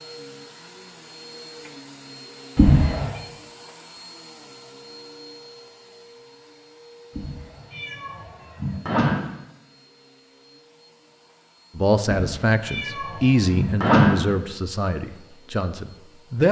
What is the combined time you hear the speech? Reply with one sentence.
The speech can be heard for 5 seconds in total.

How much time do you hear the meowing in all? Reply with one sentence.
You can hear the meowing for 5 seconds altogether.